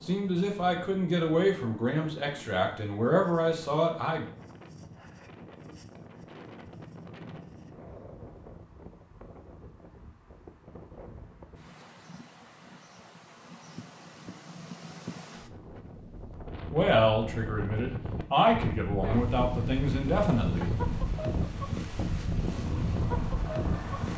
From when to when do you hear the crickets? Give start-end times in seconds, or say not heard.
not heard.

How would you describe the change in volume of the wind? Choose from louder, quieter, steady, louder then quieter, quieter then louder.
louder.